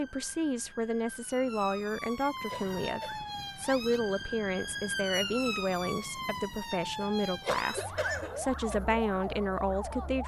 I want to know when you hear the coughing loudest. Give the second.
8 s.